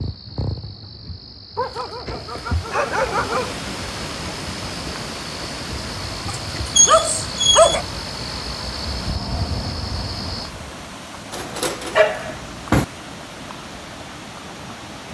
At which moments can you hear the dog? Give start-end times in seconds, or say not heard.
1.6-3.5, 6.2-7.8, 11.3-12.8.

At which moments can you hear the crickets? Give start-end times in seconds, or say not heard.
0.0-10.6.